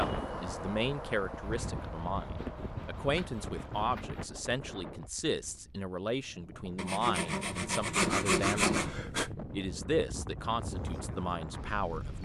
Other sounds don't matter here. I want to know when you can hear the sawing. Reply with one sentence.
The sawing can be heard from 1.4 to 4.3 s and from 6.8 to 9.3 s.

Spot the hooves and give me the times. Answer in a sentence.
The hooves can be heard from 0.0 to 3.9 s and from 10.6 to 12.2 s.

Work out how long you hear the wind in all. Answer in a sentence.
The wind can be heard for 12 seconds in total.